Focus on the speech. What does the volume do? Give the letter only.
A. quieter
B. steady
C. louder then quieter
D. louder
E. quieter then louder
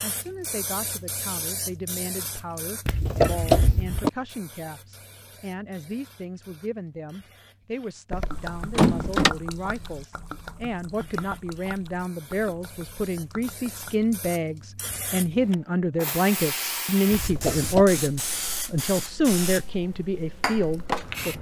D.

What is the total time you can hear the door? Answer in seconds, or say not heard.
3 s.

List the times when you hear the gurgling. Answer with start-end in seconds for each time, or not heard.
8.3-14.1.